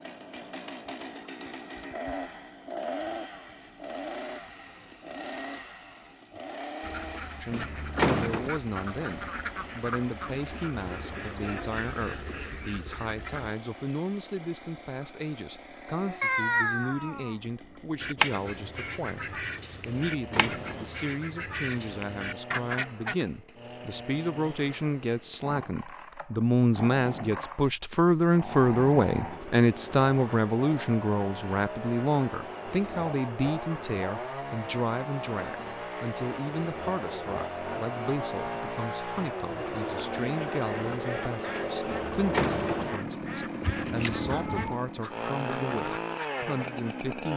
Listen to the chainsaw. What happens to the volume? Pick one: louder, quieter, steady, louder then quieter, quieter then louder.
quieter then louder.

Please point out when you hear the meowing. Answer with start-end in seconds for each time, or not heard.
16.2-17.4, 43.6-44.8.